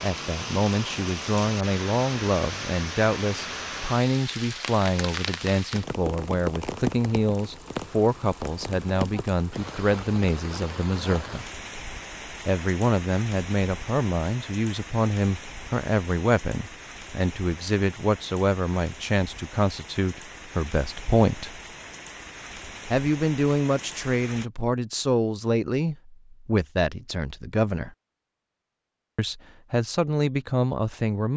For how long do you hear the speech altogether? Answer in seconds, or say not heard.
28 s.